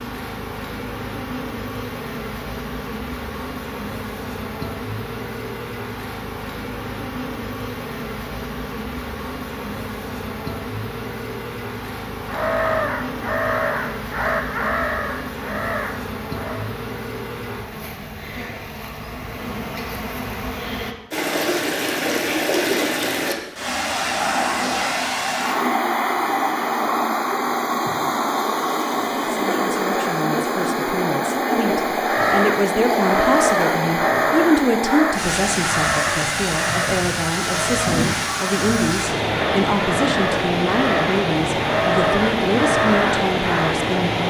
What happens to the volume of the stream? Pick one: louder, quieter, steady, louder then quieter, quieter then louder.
steady.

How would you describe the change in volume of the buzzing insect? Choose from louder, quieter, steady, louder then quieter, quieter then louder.
steady.